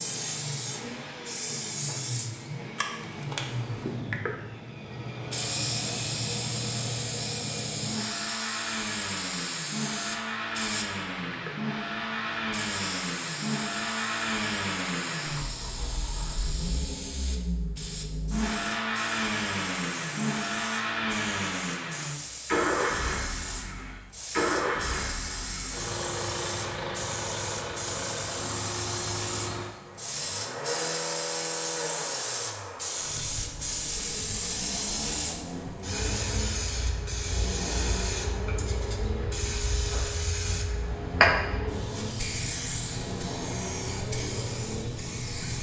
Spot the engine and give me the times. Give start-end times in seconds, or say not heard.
0.0-45.2.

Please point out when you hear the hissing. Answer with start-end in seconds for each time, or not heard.
0.0-45.5.